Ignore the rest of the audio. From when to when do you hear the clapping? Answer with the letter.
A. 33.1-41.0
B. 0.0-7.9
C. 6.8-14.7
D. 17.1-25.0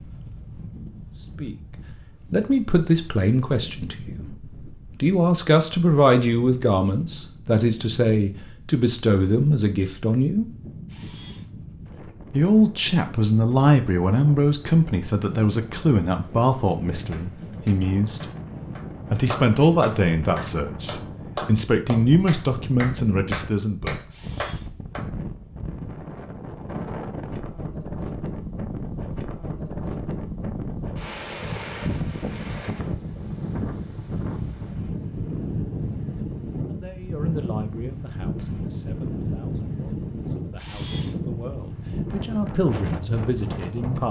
D.